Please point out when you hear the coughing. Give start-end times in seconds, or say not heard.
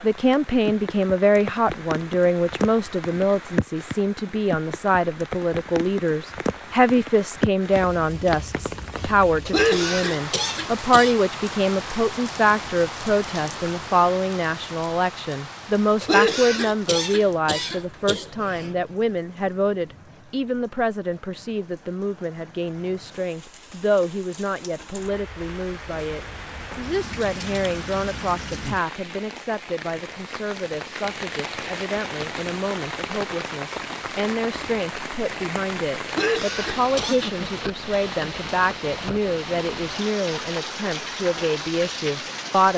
9.4-11.2, 16.0-18.7, 36.0-37.4.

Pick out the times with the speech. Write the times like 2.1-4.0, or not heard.
0.0-42.7.